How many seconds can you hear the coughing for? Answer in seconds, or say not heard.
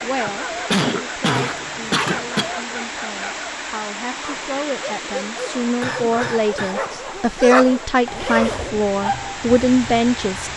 3 s.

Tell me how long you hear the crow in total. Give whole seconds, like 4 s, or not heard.
not heard.